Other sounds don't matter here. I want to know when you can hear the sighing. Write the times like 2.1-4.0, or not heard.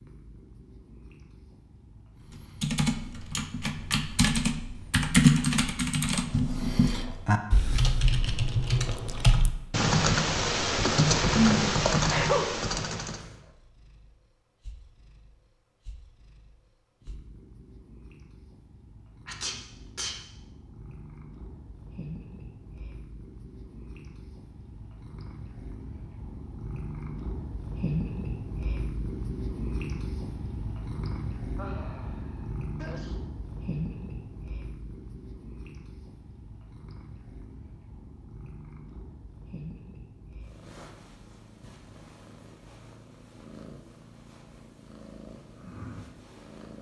11.3-11.8, 31.6-32.5.